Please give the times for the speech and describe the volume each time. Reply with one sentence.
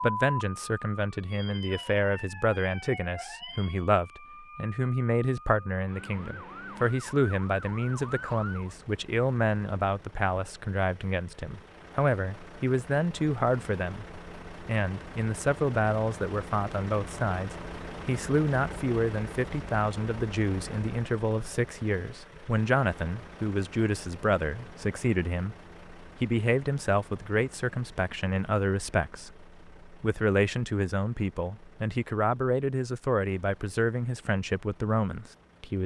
The speech can be heard from 0.0 to 35.8 s, at a steady volume.